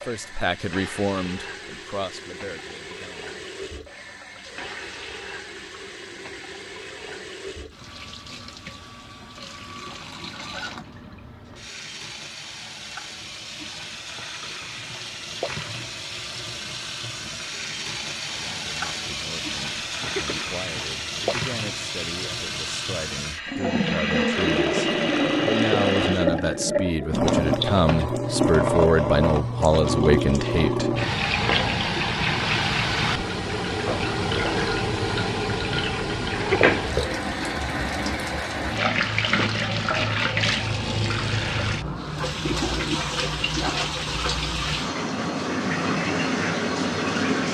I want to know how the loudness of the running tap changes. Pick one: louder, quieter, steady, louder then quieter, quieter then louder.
louder.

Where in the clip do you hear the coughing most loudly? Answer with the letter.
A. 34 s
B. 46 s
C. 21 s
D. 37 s
D.